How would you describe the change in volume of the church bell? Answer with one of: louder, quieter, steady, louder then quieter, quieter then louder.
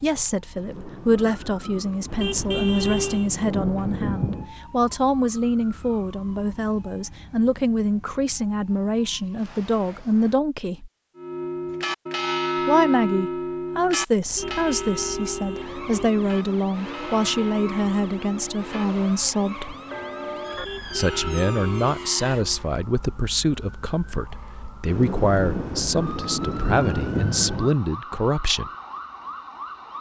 quieter.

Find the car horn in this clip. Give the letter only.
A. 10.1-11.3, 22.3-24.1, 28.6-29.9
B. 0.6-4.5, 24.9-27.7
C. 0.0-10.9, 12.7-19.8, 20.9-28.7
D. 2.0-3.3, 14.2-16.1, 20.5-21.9
D.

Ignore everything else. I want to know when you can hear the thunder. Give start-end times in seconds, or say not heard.
0.6-4.5, 24.9-27.7.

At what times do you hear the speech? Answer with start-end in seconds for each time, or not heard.
0.0-10.9, 12.7-19.8, 20.9-28.7.